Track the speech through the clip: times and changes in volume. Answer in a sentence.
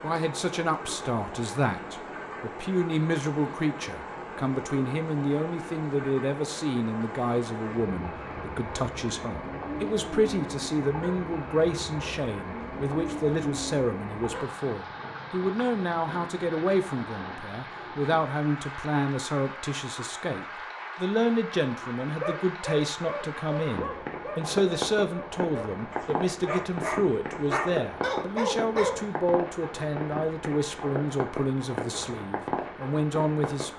The speech can be heard from 0.0 to 33.7 s, at a steady volume.